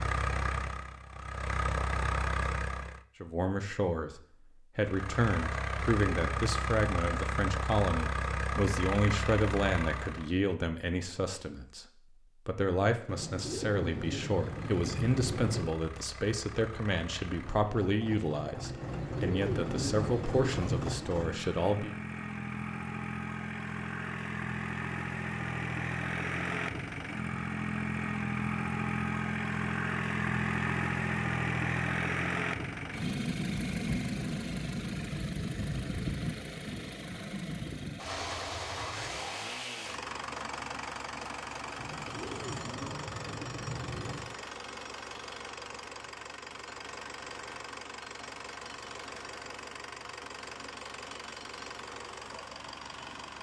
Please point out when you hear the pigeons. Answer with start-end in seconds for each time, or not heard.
13.1-15.7, 18.8-21.0, 41.8-44.4.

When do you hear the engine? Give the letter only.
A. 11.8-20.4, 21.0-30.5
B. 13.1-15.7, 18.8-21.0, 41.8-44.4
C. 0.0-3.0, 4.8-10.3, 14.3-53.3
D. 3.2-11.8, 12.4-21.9
C.